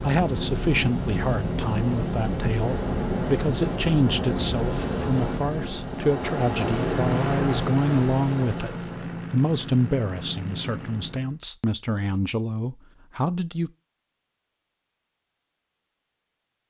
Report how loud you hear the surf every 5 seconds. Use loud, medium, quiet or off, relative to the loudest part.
loud, loud, off, off.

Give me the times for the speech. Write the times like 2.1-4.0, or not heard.
0.0-13.7.